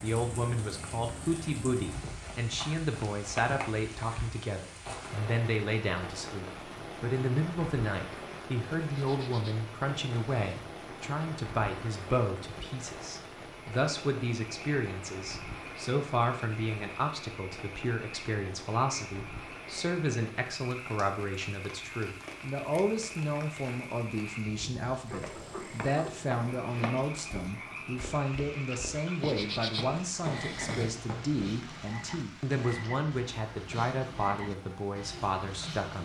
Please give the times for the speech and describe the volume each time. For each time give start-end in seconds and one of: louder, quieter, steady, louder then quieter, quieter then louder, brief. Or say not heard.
0.0-36.0 steady.